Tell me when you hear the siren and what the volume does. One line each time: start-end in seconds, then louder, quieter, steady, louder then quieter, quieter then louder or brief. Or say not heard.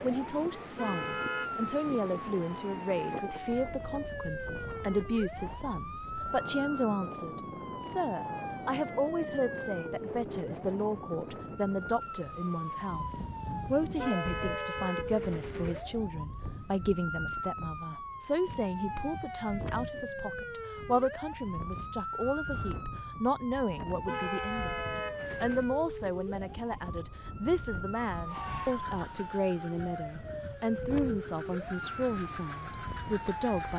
0.0-33.7 steady.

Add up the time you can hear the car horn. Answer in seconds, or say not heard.
4 s.